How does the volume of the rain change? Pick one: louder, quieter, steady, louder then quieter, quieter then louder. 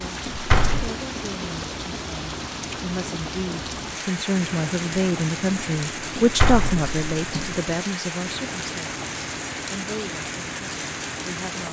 steady.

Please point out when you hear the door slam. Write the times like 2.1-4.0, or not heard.
0.2-0.9, 6.2-7.5.